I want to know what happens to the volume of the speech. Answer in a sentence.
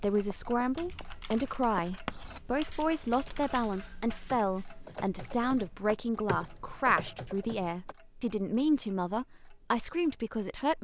The loudness of the speech stays about the same.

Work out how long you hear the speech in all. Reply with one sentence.
The speech can be heard for 11 seconds in total.